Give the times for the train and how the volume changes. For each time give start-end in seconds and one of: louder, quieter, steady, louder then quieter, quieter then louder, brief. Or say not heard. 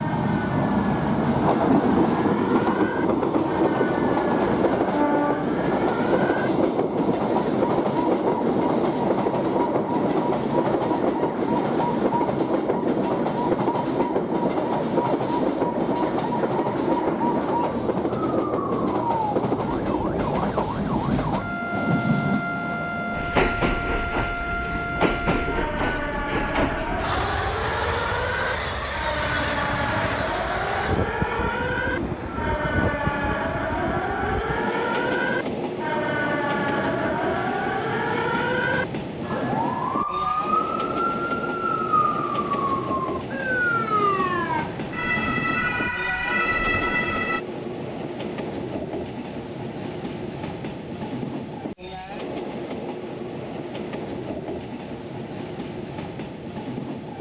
0.0-57.1 quieter.